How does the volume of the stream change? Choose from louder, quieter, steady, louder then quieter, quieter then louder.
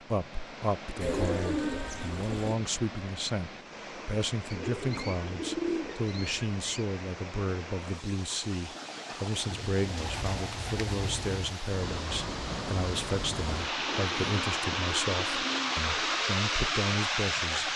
louder.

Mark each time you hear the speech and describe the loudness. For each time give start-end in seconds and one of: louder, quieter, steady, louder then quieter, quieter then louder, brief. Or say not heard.
0.1-17.7 steady.